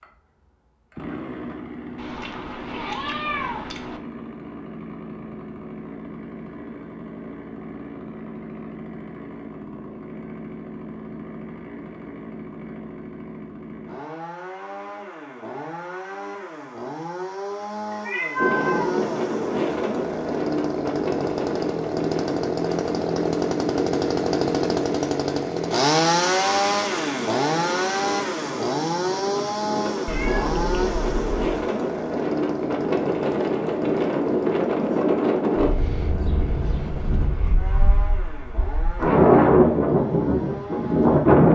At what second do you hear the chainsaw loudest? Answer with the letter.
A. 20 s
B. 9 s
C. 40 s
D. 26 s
D.